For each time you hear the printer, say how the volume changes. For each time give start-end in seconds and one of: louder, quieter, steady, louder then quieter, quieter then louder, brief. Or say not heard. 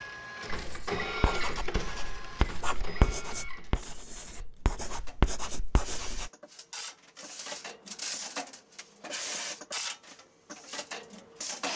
0.0-11.7 quieter then louder.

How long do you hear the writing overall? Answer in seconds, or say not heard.
6 s.